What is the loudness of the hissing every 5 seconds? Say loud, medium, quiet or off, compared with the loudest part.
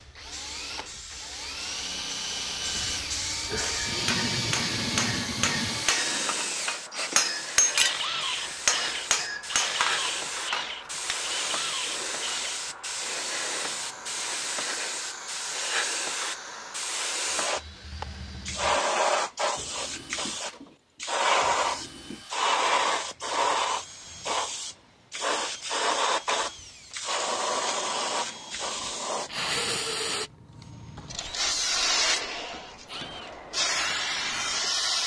medium, medium, medium, loud, loud, loud, loud.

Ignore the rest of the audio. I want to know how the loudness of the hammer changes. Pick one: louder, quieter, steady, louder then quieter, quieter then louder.
louder then quieter.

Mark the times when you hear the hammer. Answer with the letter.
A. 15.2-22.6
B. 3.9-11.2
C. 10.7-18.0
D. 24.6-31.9
B.